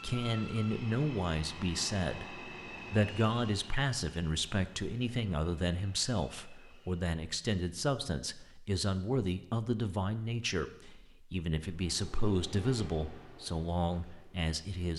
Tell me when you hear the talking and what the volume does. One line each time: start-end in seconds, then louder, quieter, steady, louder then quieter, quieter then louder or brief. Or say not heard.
0.0-14.9 steady.